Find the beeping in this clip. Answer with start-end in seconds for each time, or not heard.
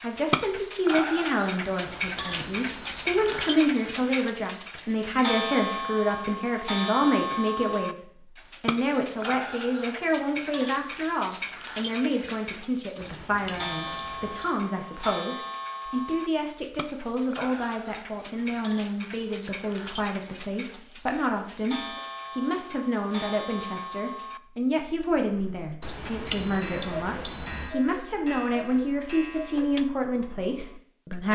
1.9-3.5, 12.9-14.6, 25.8-27.8.